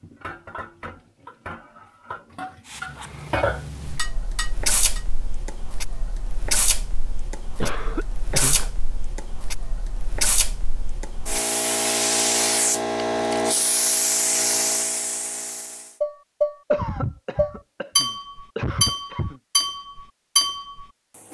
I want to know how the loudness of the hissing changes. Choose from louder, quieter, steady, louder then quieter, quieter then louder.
louder.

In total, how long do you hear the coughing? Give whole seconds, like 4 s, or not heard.
4 s.